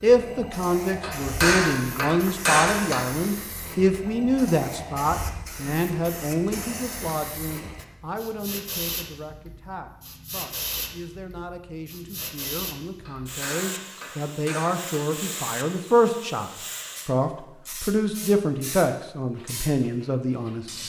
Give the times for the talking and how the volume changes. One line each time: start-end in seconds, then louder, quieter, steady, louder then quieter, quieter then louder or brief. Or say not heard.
0.0-20.8 quieter then louder.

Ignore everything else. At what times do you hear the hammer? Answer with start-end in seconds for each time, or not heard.
1.0-3.0, 13.1-14.9.